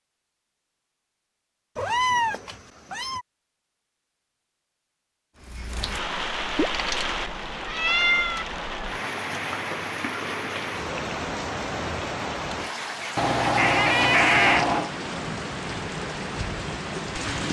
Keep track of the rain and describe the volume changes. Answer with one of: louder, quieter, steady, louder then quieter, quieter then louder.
steady.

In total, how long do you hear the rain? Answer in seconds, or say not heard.
12 s.